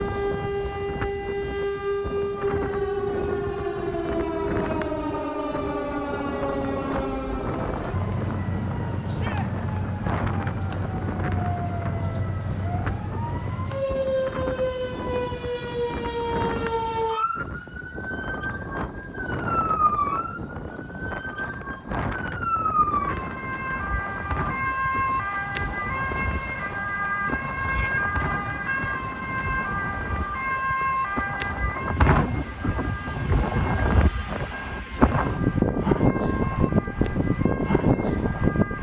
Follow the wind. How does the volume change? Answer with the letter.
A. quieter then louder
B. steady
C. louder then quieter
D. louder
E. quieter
D.